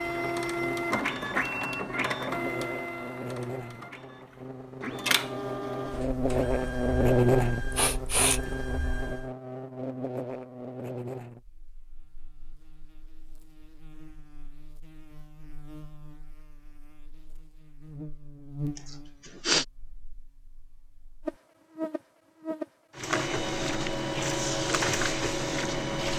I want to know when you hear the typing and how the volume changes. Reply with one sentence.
You can't hear the typing here.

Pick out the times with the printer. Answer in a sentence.
You can hear the printer from 0.0 to 9.3 s and from 22.9 to 26.1 s.